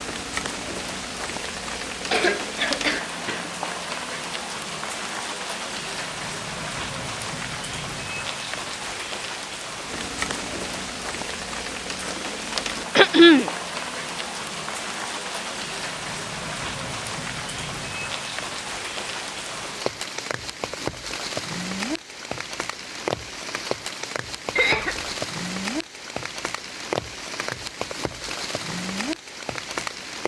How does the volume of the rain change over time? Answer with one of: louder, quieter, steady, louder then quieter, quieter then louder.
steady.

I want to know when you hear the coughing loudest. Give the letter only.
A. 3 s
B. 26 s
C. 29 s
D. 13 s
D.